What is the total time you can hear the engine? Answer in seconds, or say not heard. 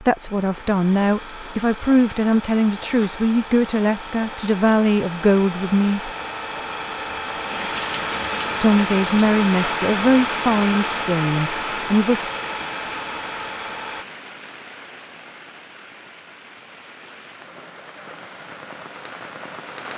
14 s.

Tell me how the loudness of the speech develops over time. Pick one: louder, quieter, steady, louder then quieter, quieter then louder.
steady.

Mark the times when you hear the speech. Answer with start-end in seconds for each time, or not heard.
0.0-6.1, 8.6-12.3.